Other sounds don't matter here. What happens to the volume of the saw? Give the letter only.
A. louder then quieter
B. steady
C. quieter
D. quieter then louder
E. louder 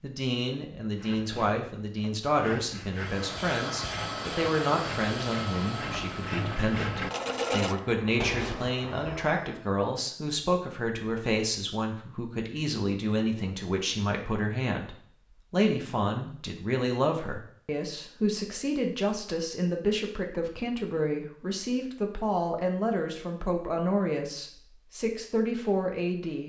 E.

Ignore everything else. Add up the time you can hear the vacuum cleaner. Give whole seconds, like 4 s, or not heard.
7 s.